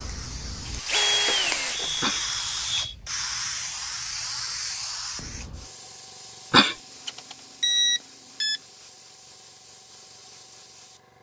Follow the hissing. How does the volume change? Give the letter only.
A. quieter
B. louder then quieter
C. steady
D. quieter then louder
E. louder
A.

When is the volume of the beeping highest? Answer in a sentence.
The volume of the beeping peaks at 8 seconds.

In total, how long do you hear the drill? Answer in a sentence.
You can hear the drill for 2 seconds altogether.